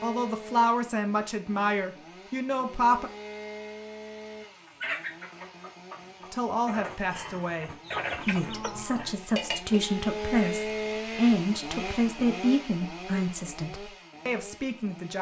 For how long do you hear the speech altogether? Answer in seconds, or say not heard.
12 s.